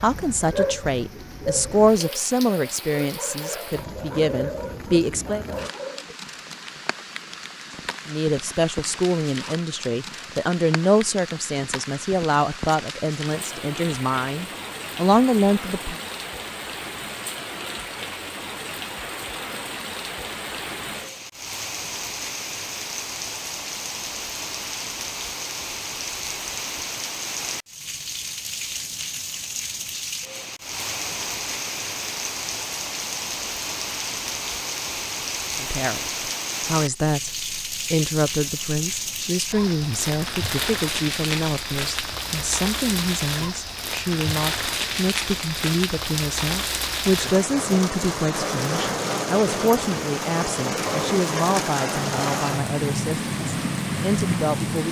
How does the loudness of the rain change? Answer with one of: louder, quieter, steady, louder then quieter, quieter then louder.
louder.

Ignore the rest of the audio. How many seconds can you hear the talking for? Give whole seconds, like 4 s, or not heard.
33 s.